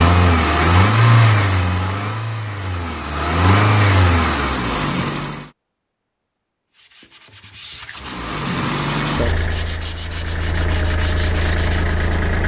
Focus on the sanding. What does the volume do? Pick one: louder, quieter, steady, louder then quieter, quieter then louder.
louder.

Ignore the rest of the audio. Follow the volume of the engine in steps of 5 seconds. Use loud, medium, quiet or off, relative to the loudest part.
loud, medium, medium.